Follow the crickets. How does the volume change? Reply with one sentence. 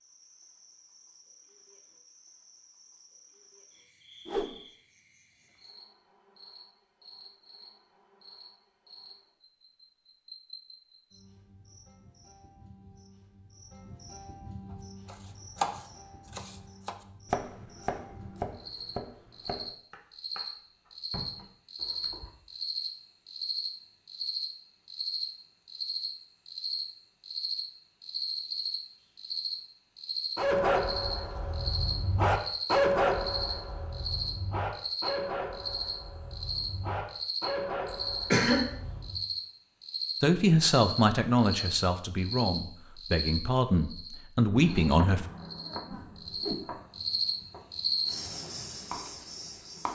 The volume of the crickets goes up.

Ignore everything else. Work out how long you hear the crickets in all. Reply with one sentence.
The crickets can be heard for 50 seconds in total.